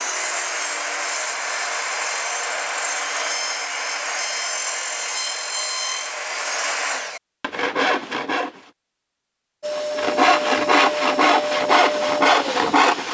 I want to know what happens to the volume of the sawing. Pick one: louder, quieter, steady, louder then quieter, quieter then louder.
louder.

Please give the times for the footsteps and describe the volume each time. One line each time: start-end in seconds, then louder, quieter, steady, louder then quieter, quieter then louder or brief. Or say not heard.
not heard.